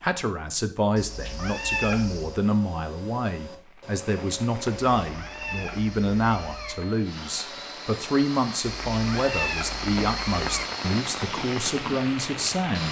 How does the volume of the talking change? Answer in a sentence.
The volume of the talking stays about the same.